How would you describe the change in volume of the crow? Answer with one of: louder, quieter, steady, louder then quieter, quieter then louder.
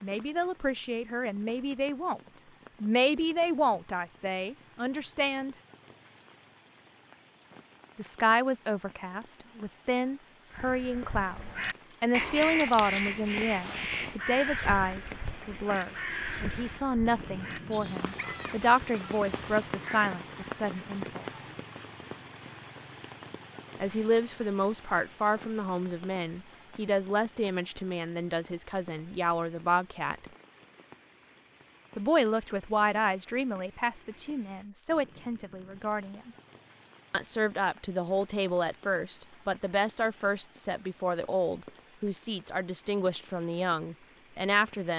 quieter.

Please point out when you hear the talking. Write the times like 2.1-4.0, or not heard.
0.0-2.2, 2.8-5.5, 8.0-21.5, 23.8-30.2, 31.9-36.3, 37.1-44.9.